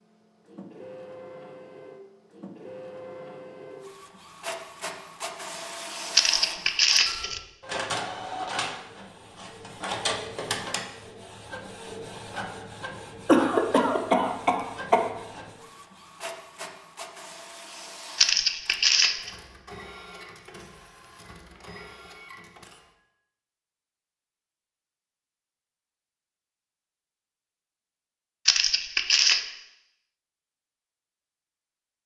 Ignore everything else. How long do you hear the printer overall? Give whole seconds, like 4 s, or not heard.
23 s.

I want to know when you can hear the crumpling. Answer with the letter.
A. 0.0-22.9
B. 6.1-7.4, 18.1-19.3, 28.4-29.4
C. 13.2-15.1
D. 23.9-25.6
B.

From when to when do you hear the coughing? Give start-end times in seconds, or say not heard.
13.2-15.1.